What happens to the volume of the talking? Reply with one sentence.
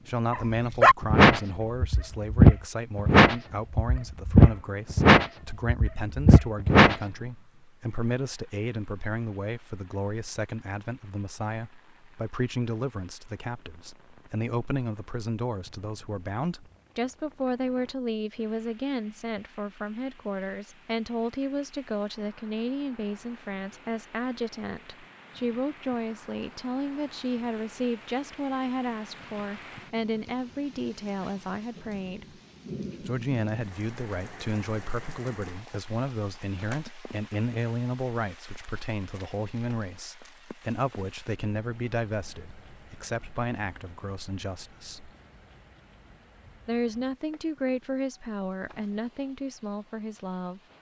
The volume of the talking stays about the same.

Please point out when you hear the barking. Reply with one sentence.
You can hear the barking from 0.3 to 7.0 s.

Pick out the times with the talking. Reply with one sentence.
You can hear the talking from 0.1 to 32.4 s, from 33.0 to 45.1 s and from 46.6 to 50.6 s.